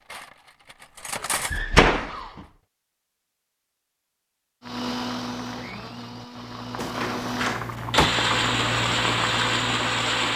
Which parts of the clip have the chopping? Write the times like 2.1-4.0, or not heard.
not heard.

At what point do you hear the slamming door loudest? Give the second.
2 s.